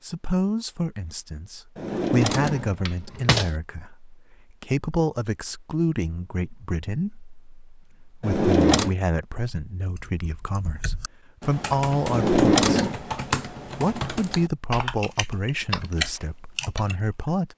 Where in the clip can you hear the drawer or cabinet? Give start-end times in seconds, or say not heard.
1.8-3.5, 8.2-8.9, 12.1-13.0.